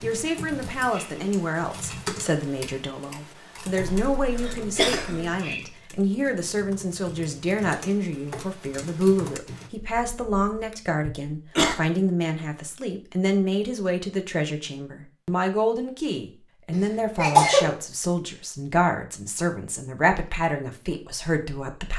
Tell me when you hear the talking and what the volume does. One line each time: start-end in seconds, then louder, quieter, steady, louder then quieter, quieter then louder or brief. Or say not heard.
0.0-21.9 steady.